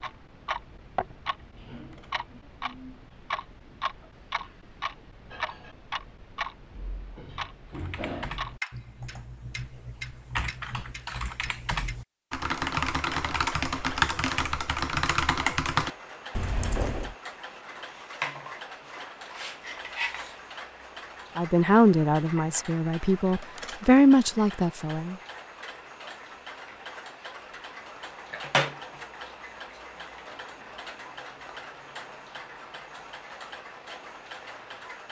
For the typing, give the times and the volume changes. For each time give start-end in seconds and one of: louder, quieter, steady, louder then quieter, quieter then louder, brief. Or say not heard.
7.7-17.1 louder.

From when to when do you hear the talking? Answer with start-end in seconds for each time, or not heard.
21.4-25.1.